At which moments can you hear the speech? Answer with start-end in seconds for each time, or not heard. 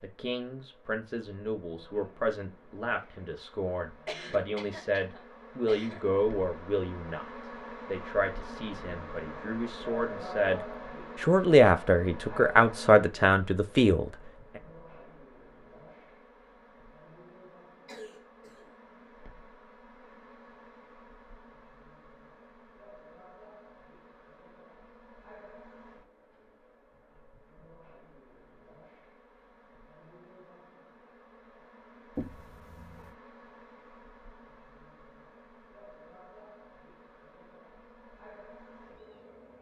0.0-7.2, 7.8-10.6, 11.2-14.1.